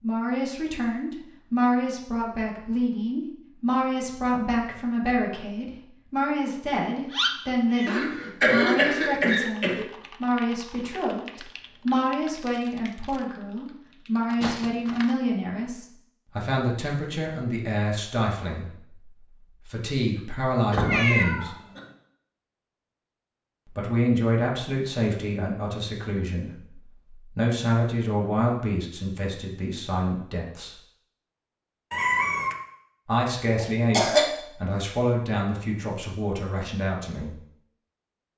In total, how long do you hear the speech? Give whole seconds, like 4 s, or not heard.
33 s.